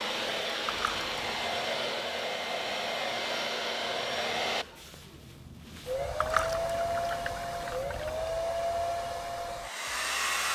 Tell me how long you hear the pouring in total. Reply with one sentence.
The pouring can be heard for 3 seconds in total.